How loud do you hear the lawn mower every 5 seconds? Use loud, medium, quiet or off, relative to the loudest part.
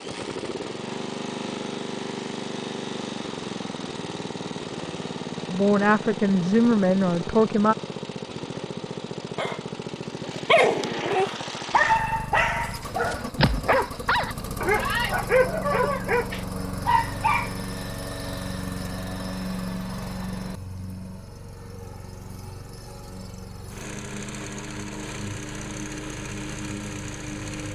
loud, loud, loud, loud, medium, loud.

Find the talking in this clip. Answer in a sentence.
You can hear the talking from 5.5 to 7.8 s.